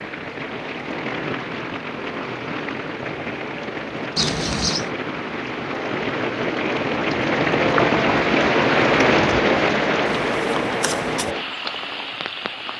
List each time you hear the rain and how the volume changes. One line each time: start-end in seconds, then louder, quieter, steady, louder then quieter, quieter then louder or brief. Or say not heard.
0.0-12.7 louder then quieter.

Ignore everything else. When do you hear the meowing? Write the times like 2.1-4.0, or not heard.
4.2-4.9.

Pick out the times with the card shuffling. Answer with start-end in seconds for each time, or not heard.
10.1-11.3.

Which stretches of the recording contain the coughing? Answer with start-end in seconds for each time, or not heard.
not heard.